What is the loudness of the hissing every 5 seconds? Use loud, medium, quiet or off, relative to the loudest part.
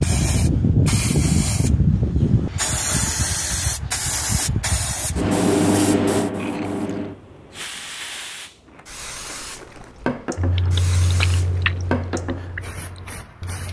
loud, loud, medium.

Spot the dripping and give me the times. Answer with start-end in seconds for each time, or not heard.
not heard.